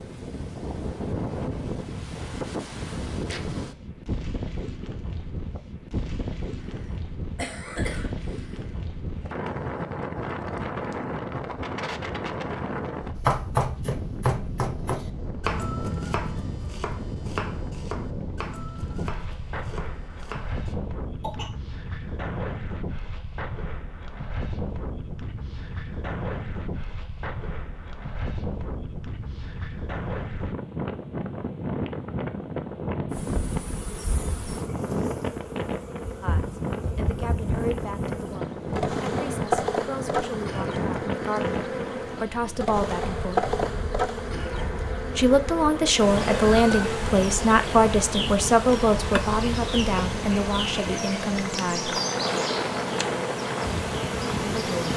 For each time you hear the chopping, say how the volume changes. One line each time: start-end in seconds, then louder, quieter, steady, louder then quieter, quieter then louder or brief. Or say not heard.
13.2-20.8 quieter.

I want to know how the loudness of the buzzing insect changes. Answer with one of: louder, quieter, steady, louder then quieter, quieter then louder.
louder.